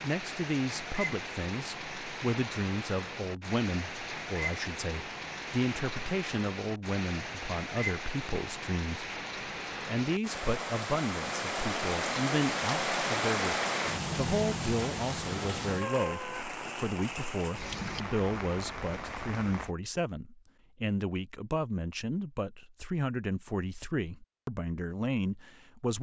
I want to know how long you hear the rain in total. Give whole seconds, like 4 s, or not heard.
20 s.